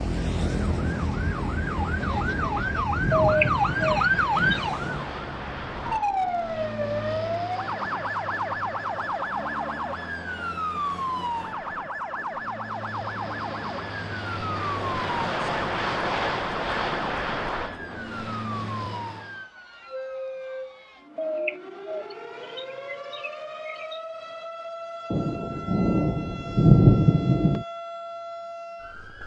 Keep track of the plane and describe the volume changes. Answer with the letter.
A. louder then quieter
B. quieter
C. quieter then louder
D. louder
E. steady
C.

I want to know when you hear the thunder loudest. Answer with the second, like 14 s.
27 s.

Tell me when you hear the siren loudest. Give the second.
4 s.